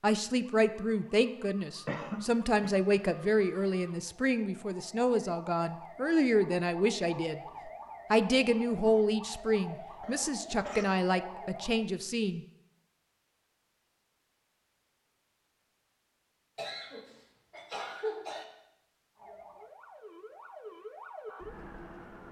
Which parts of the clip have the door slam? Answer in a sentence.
You can't hear the door slam here.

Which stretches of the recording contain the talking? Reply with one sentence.
The talking can be heard from 0.0 to 12.4 s.